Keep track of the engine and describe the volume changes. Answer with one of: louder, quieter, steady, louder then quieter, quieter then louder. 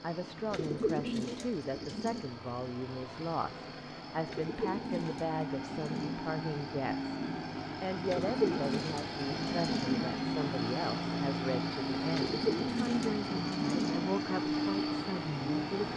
louder.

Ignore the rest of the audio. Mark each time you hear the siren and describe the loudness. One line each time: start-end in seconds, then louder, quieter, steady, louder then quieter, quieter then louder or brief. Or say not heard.
not heard.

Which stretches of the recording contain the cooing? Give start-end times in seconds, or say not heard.
0.5-2.2, 4.2-6.2, 8.1-10.1, 12.1-14.1.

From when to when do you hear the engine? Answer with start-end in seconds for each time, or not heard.
0.0-15.9.